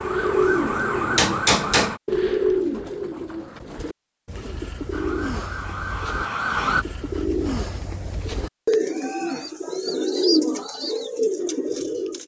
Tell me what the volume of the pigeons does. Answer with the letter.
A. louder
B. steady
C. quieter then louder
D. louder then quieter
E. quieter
C.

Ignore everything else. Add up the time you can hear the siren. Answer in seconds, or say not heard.
4 s.